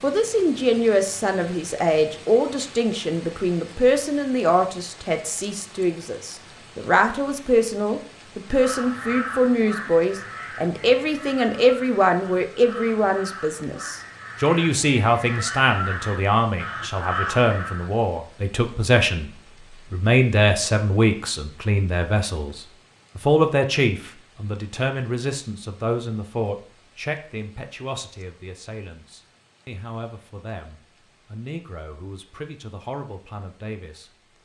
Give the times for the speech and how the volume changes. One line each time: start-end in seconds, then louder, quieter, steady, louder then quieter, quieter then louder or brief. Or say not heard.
0.0-34.4 quieter.